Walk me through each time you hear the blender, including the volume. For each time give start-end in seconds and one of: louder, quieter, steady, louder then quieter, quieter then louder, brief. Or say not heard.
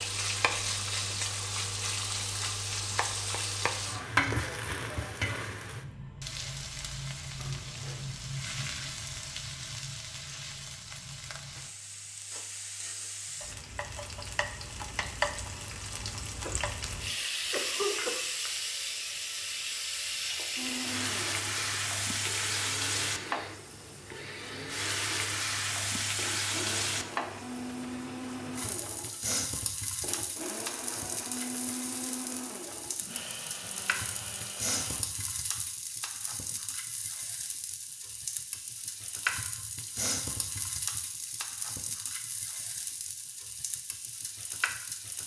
20.6-35.0 steady.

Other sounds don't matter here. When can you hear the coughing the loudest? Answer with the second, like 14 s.
18 s.